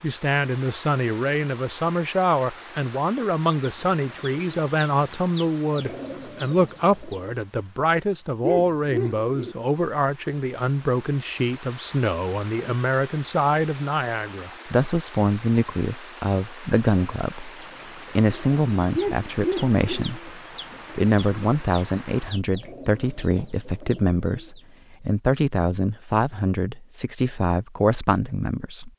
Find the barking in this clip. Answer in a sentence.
You can hear the barking from 8.4 to 9.6 s and from 18.9 to 20.1 s.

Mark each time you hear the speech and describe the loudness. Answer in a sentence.
You can hear the speech from 0.0 to 28.9 s, at a steady volume.